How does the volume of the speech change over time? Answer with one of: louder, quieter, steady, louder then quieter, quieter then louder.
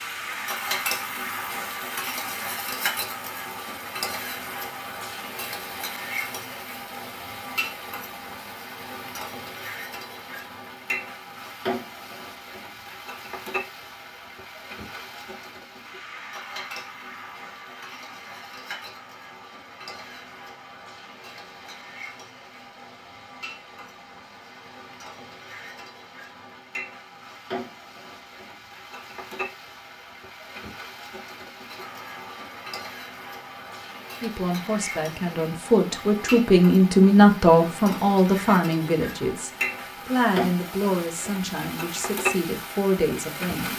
louder then quieter.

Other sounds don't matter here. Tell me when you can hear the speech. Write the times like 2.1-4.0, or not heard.
34.2-43.7.